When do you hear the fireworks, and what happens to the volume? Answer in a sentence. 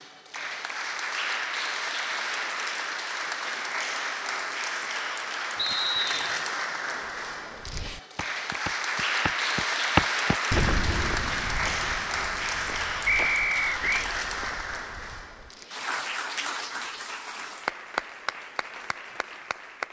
The fireworks can't be heard in this clip.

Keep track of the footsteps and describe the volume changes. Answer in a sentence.
The volume of the footsteps goes up, then down.